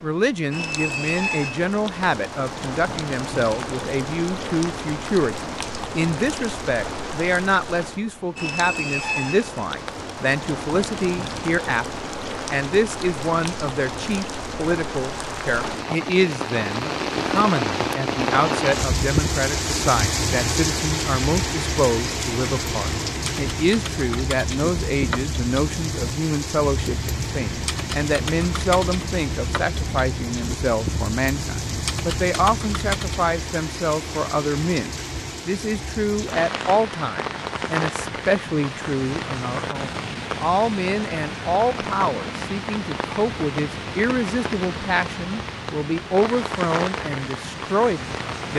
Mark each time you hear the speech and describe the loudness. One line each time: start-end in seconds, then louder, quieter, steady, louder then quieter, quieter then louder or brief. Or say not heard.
0.0-48.5 steady.